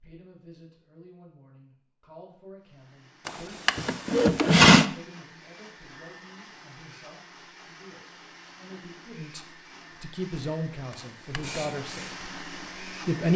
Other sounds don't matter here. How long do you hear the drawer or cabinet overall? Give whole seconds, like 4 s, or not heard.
2 s.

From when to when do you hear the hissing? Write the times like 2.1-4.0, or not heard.
11.3-13.2.